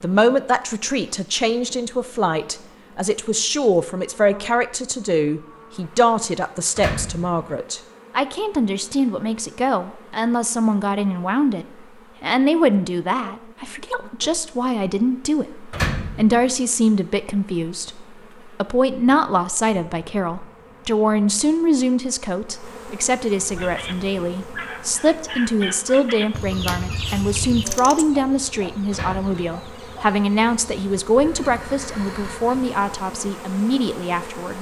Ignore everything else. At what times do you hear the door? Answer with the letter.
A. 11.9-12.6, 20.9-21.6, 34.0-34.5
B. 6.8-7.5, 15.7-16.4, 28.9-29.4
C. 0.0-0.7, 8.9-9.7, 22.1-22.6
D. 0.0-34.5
B.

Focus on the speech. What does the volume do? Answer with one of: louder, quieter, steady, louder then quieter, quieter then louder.
steady.